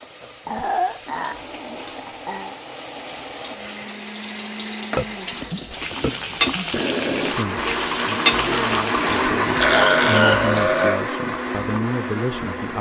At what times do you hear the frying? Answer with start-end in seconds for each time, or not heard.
0.0-10.9.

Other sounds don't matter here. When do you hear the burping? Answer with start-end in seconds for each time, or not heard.
0.5-2.5, 5.0-6.7, 9.1-11.1.